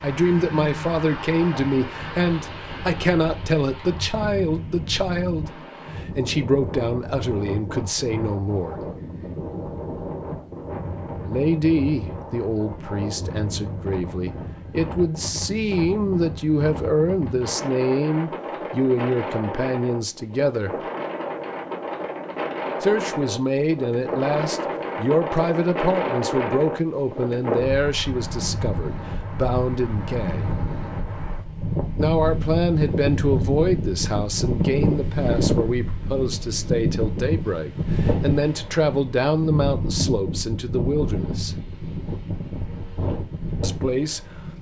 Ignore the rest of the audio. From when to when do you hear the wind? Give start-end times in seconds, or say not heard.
0.0-44.5.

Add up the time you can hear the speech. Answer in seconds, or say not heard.
36 s.